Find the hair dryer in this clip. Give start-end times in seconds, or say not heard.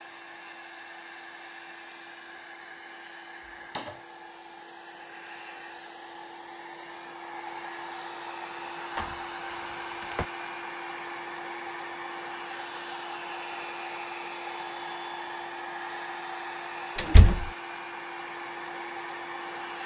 0.0-19.8.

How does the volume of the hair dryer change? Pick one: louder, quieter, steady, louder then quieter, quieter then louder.
louder.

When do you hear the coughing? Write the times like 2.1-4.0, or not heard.
not heard.